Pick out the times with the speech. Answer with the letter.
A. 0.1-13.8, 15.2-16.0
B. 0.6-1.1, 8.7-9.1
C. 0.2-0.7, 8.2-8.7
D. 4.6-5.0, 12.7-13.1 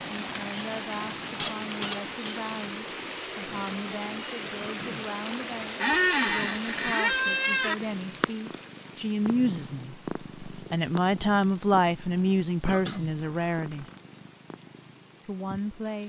A.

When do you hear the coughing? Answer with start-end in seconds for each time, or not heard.
4.6-5.0, 12.7-13.1.